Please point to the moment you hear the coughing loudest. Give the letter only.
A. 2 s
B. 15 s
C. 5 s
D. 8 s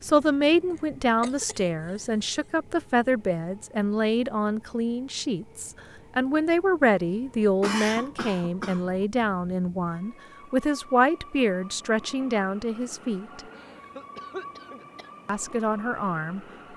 D.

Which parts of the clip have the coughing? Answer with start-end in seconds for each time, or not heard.
0.7-2.0, 7.6-8.9, 13.6-15.1.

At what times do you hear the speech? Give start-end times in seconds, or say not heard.
0.0-13.4, 15.2-16.4.